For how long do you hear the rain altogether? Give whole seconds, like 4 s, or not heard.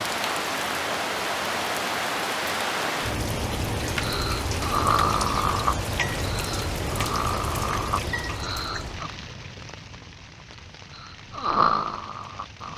13 s.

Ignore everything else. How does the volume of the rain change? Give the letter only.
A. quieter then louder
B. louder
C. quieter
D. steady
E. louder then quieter
C.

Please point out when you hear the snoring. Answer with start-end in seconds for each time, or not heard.
4.0-9.1, 10.9-12.7.